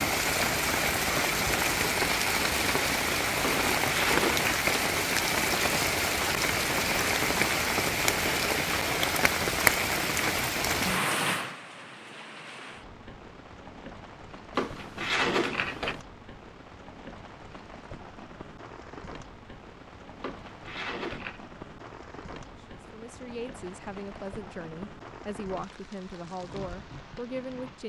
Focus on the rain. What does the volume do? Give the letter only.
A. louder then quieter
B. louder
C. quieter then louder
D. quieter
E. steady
D.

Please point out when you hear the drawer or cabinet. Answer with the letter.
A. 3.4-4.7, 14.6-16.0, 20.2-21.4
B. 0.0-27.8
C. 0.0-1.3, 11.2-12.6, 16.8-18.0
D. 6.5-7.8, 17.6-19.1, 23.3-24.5
A.